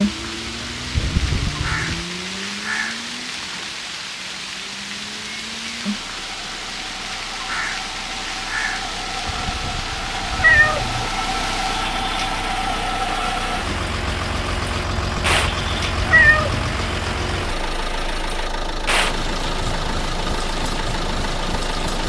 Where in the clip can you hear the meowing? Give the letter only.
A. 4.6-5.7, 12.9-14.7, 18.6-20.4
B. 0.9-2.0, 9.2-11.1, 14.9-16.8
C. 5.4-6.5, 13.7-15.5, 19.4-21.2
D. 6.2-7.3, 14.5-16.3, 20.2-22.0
B.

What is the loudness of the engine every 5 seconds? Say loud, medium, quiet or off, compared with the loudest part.
medium, medium, loud, loud, loud.